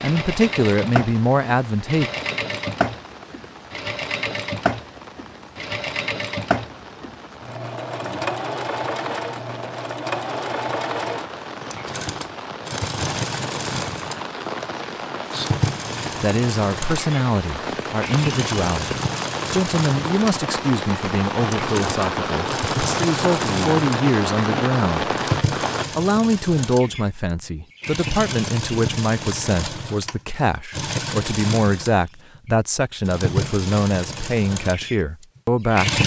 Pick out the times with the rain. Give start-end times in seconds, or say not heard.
0.0-25.9.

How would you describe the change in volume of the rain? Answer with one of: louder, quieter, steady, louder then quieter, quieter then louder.
louder.